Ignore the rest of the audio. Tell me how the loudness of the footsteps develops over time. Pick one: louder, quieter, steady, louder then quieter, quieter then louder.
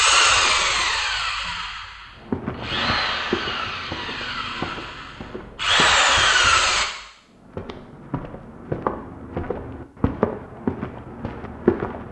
quieter then louder.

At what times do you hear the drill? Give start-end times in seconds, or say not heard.
0.0-6.8.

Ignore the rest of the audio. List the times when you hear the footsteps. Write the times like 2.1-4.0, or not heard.
2.3-6.0, 7.3-12.0.